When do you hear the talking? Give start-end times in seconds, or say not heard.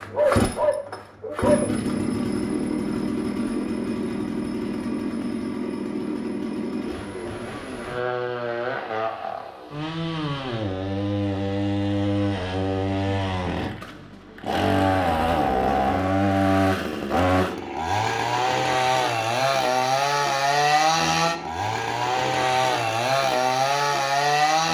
not heard.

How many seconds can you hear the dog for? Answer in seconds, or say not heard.
2 s.